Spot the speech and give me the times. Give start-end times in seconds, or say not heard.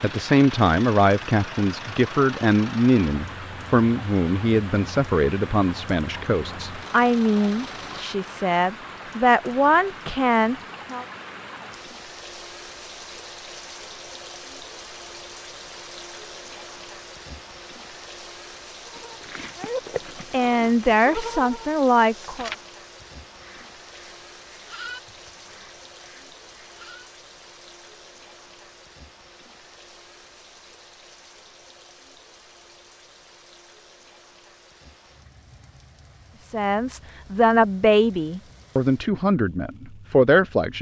0.0-11.1, 19.6-22.5, 36.4-40.7.